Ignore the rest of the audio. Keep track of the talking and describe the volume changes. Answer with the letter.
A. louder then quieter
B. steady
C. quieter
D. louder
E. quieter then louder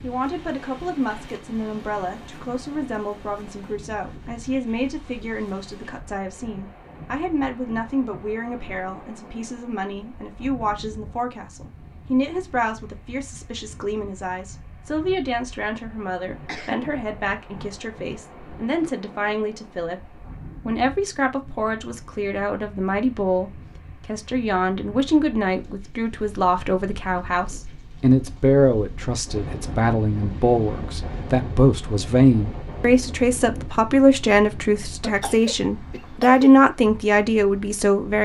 D.